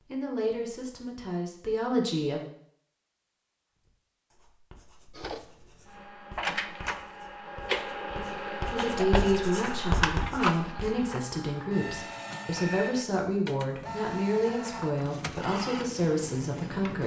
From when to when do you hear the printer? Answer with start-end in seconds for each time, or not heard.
5.2-17.0.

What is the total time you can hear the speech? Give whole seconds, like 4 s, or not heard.
11 s.